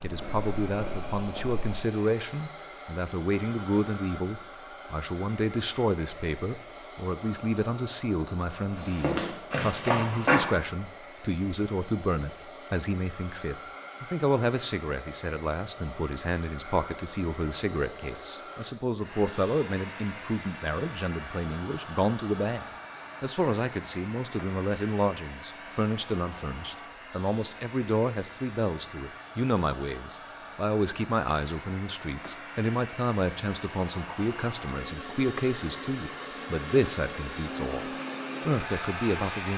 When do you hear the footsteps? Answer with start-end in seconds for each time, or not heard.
0.0-1.8, 8.7-10.4.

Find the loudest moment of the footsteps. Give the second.
10 s.